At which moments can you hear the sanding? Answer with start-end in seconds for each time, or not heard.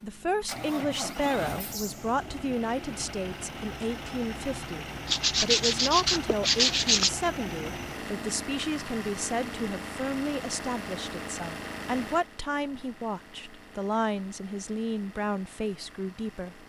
5.0-7.1.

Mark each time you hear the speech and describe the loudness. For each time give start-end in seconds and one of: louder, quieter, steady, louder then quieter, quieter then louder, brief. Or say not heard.
0.0-16.6 steady.